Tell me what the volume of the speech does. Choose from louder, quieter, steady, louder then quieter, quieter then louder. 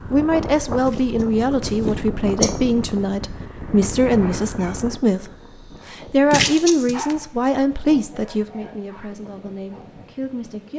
quieter.